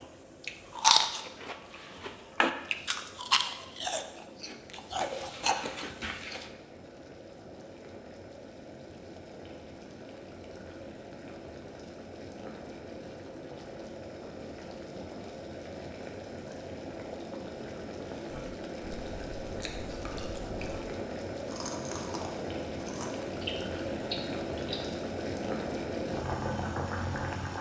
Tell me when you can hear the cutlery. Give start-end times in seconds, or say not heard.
not heard.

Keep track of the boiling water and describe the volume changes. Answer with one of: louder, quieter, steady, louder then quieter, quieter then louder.
louder.